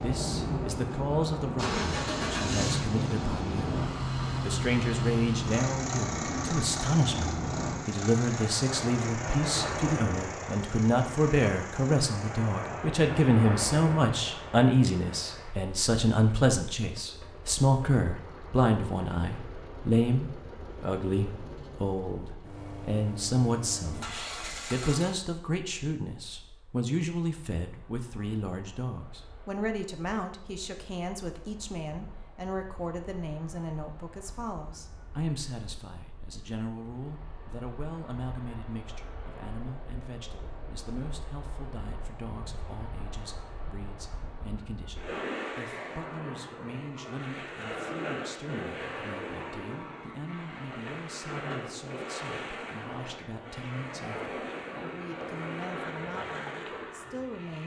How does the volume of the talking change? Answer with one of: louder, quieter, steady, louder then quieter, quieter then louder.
quieter.